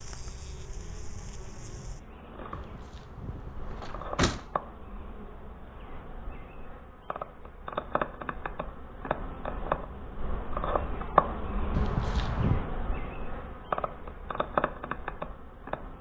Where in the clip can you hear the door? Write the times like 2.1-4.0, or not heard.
2.5-4.4, 11.7-12.7.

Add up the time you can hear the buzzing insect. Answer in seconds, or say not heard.
16 s.